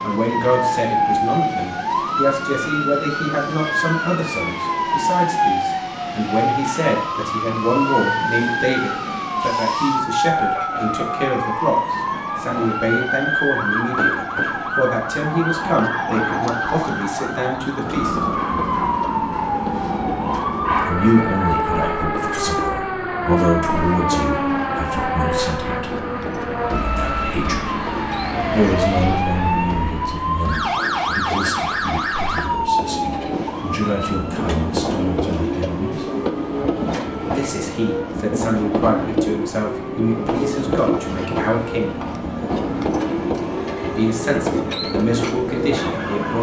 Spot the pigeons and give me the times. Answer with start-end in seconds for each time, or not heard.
not heard.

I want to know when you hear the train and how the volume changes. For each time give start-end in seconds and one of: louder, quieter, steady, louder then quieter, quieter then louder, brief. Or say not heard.
0.0-46.3 louder.